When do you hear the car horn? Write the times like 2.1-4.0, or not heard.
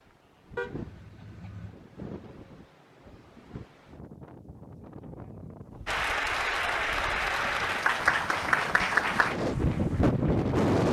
0.6-1.8.